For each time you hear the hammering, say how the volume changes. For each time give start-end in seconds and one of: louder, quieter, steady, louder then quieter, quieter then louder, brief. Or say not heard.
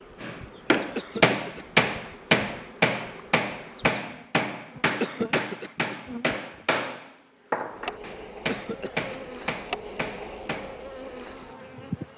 0.2-10.8 quieter.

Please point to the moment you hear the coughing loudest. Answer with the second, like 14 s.
5 s.